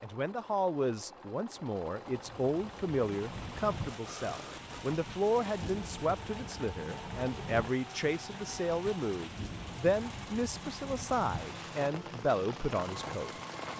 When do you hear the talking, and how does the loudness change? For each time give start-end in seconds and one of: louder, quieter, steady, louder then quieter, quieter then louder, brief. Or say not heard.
0.0-13.3 steady.